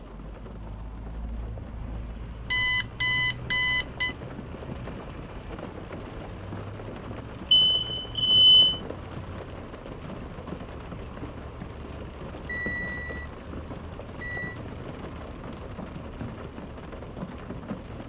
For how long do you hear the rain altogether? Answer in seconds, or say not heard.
18 s.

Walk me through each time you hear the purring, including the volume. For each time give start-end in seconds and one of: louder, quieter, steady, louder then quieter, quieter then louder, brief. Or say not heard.
not heard.